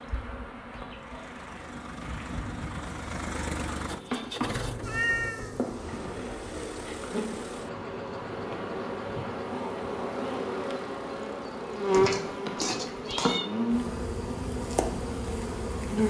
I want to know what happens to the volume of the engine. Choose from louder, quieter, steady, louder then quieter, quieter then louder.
quieter.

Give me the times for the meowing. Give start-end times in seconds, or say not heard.
4.8-5.8, 11.9-13.5.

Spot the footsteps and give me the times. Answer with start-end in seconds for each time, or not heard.
not heard.